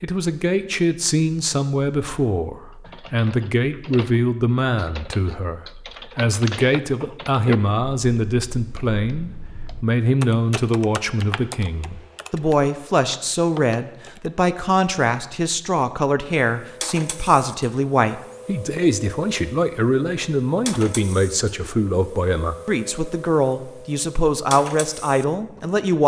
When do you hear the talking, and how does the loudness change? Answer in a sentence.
You can hear the talking from 0.0 to 26.0 s, at a steady volume.